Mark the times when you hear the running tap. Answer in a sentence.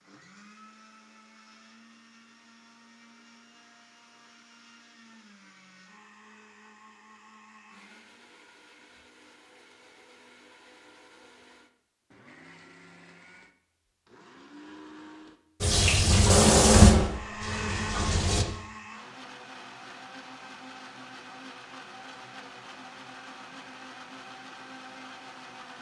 You can hear the running tap from 15.6 to 18.4 s.